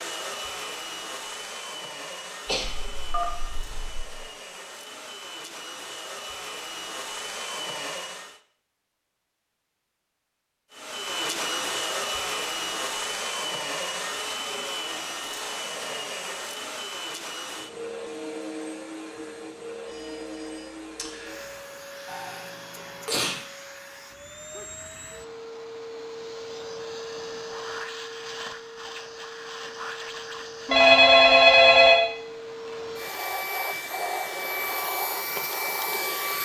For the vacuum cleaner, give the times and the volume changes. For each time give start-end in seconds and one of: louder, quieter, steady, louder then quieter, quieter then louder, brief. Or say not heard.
0.0-8.4 quieter then louder
10.7-36.3 quieter then louder.